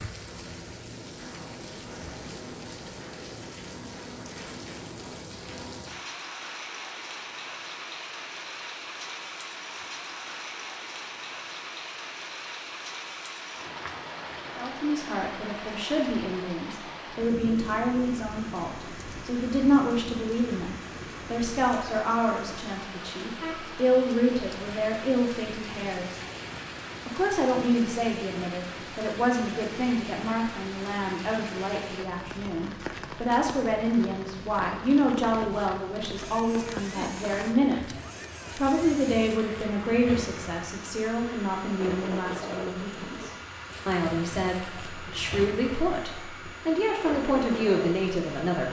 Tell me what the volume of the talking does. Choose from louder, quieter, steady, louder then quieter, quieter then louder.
steady.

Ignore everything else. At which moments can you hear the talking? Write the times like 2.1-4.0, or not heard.
14.6-26.2, 27.1-37.9, 38.5-48.6.